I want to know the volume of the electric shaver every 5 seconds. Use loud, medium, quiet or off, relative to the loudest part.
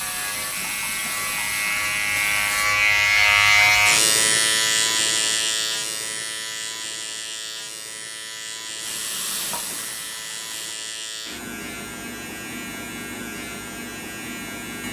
loud, medium, quiet.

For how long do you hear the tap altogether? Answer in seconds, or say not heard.
5 s.